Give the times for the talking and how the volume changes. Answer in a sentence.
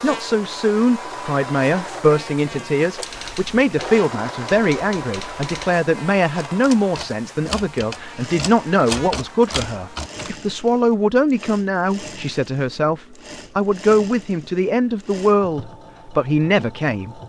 You can hear the talking from 0.0 to 17.1 s, at a steady volume.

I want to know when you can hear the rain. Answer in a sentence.
The rain can't be heard in this clip.